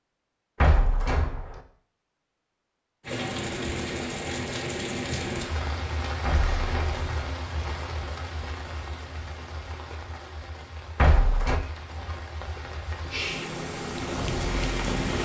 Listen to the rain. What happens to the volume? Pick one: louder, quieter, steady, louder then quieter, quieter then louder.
quieter then louder.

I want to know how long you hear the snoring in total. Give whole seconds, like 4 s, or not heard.
not heard.